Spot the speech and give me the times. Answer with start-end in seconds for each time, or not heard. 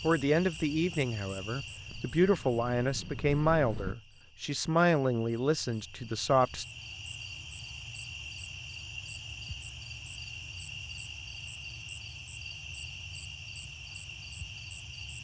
0.0-6.7.